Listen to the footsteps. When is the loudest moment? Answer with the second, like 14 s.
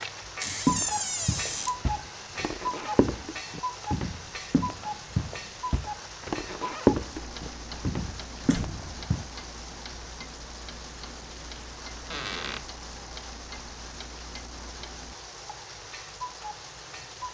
7 s.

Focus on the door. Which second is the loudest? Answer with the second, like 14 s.
1 s.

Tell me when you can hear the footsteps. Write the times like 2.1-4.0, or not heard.
0.7-9.2.